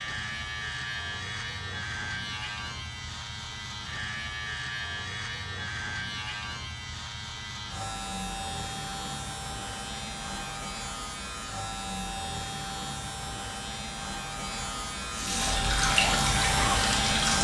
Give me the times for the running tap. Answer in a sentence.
The running tap can be heard from 15.1 to 17.3 s.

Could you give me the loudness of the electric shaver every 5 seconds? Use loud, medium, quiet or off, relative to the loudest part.
medium, medium, medium, loud.